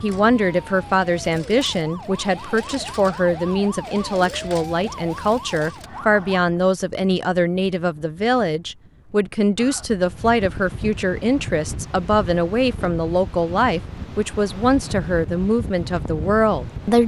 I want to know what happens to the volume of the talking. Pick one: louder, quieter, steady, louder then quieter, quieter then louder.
steady.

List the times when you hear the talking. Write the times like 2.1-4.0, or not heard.
0.0-17.0.